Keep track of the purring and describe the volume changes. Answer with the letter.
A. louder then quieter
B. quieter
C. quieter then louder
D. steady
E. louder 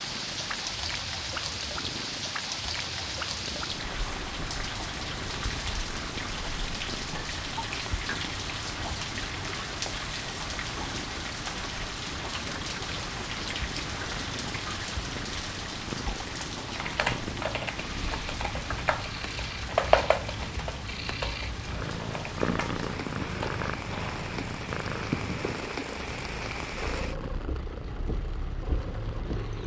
E.